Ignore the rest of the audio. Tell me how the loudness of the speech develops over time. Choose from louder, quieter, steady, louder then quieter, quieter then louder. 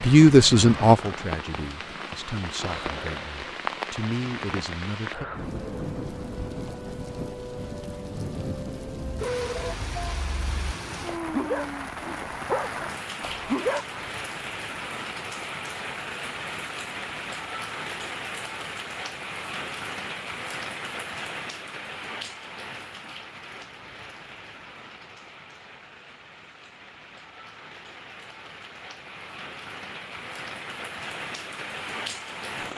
quieter then louder.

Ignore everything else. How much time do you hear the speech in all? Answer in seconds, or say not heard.
5 s.